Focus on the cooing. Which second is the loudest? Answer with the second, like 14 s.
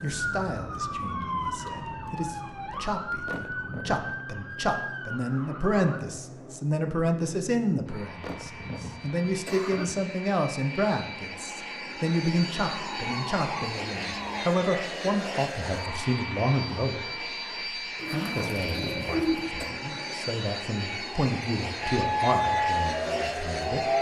19 s.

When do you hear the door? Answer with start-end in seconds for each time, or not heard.
not heard.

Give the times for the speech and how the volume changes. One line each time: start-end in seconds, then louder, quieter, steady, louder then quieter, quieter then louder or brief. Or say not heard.
0.0-17.2 louder
18.1-23.9 louder then quieter.